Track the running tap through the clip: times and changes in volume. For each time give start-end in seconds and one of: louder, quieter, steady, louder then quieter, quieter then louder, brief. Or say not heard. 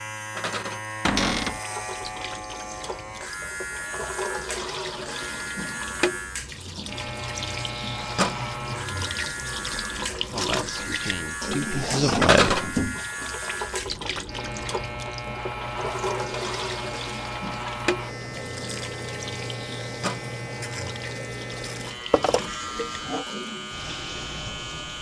0.3-24.9 louder then quieter.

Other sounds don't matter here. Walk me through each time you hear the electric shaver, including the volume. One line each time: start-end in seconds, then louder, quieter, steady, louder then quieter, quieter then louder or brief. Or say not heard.
0.0-24.9 steady.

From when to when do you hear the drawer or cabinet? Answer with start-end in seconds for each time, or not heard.
1.1-1.6, 11.4-13.3, 22.1-23.2.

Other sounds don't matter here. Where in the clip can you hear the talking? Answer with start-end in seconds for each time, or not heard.
10.3-12.7.